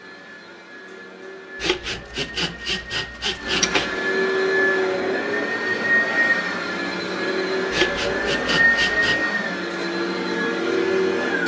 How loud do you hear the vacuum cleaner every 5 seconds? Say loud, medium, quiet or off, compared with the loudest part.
medium, loud, loud.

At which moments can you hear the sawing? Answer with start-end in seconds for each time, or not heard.
1.6-4.0, 7.7-9.2.